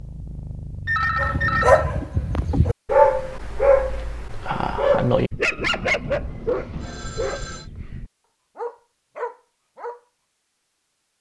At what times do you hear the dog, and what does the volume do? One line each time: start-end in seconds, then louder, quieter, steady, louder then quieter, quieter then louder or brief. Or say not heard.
1.1-10.0 quieter.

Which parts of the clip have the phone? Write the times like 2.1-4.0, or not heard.
0.8-1.9, 5.7-7.7.